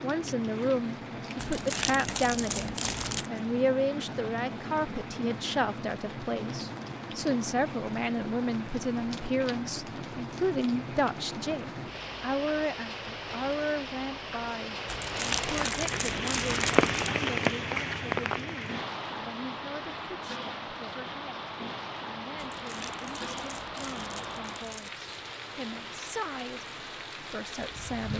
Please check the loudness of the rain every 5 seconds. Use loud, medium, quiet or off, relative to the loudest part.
medium, medium, medium, loud, medium, medium.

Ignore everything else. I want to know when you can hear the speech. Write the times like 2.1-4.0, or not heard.
0.0-28.1.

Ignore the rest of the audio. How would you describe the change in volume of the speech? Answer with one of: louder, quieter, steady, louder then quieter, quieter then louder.
quieter.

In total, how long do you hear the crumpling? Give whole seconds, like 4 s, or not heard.
7 s.